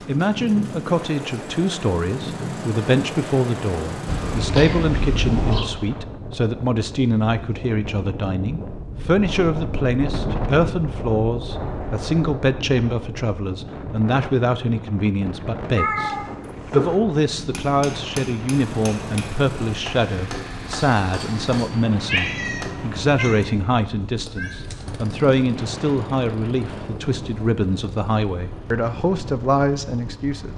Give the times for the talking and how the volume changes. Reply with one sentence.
You can hear the talking from 0.1 to 30.5 s, at a steady volume.